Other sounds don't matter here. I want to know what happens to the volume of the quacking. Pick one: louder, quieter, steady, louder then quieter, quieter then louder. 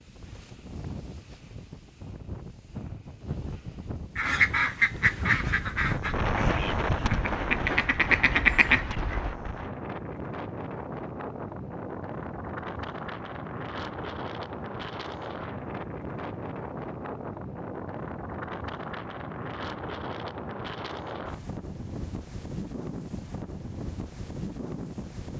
quieter then louder.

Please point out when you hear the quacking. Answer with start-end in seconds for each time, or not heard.
4.2-9.3.